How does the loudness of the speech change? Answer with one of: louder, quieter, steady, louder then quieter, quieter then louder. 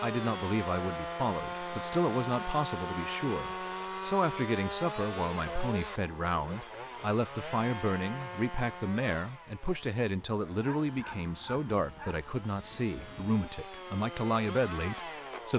steady.